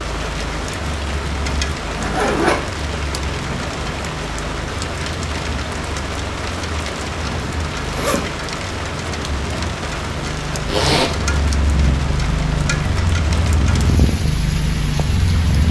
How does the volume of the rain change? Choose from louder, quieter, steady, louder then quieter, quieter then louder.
steady.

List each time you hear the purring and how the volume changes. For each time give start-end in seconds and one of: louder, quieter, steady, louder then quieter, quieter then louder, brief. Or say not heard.
0.0-15.6 louder.